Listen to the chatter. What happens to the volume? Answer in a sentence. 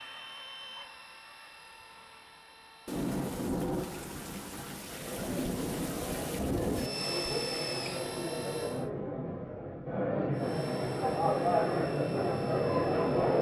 The volume of the chatter goes up.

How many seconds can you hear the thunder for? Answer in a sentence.
The thunder can be heard for 4 seconds in total.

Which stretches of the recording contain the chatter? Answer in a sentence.
The chatter can be heard from 4.8 to 13.3 s.